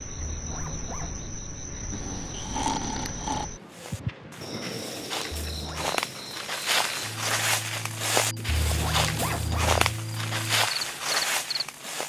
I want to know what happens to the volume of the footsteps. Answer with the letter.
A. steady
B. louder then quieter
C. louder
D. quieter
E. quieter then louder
C.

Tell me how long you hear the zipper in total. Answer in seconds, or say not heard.
3 s.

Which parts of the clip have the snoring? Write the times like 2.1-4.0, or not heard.
1.9-3.5.